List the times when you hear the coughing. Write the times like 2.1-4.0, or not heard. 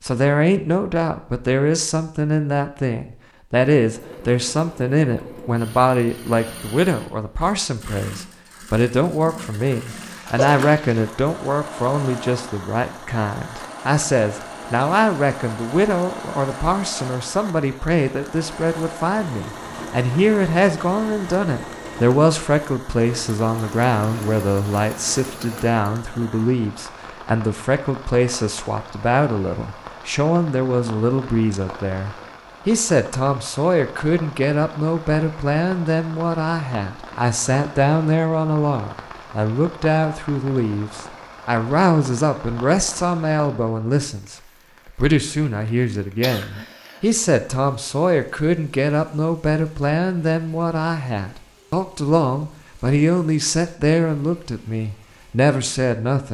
9.9-10.6, 46.2-47.0.